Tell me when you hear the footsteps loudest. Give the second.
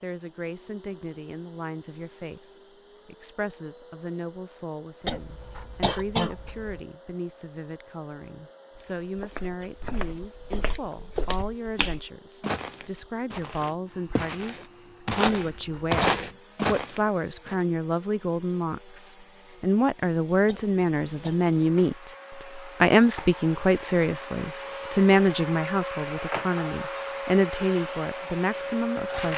16 s.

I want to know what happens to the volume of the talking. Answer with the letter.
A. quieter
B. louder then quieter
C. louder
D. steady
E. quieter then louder
C.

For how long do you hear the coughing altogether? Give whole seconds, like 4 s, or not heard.
4 s.